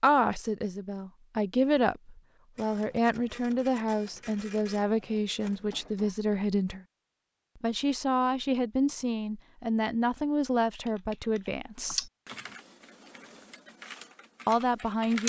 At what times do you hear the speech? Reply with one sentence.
The speech can be heard from 0.0 to 6.8 s, from 7.6 to 12.1 s and from 14.4 to 15.2 s.